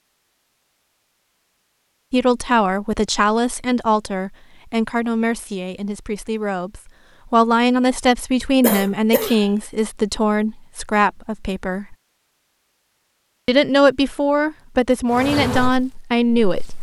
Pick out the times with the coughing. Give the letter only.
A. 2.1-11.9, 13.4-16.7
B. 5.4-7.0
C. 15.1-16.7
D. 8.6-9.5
D.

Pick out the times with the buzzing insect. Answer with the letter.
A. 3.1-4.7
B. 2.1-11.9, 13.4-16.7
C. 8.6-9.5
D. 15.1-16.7
D.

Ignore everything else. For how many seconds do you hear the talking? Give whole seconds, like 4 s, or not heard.
13 s.